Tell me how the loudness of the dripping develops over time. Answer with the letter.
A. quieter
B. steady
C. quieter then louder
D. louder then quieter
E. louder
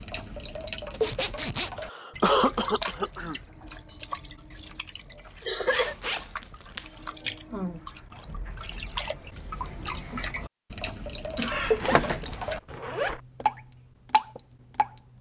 C.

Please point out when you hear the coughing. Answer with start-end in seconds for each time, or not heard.
1.8-3.4, 5.4-6.0, 11.3-12.3.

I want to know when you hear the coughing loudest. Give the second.
2 s.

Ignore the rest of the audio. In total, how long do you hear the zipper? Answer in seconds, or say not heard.
4 s.